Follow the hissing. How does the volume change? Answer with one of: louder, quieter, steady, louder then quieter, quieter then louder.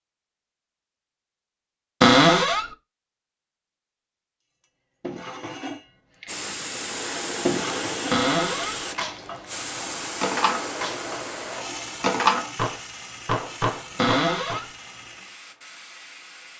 quieter.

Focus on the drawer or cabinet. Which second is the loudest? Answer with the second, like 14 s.
2 s.